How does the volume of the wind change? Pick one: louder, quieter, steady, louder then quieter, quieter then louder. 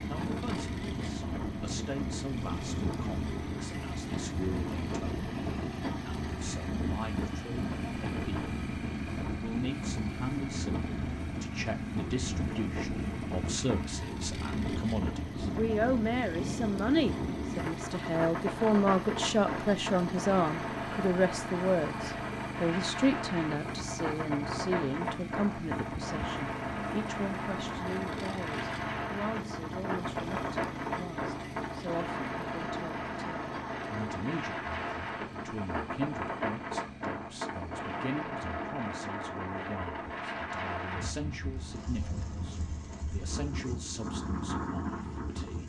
steady.